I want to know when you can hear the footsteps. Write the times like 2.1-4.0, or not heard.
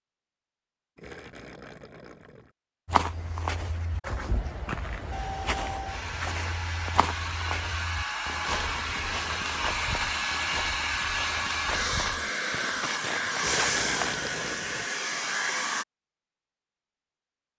2.9-14.2.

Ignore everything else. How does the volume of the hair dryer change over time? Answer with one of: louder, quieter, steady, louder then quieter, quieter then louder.
louder.